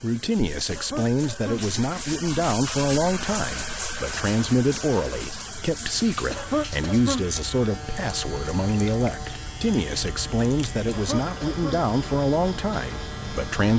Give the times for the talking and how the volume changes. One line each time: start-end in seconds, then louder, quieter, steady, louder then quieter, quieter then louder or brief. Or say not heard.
0.0-13.7 steady.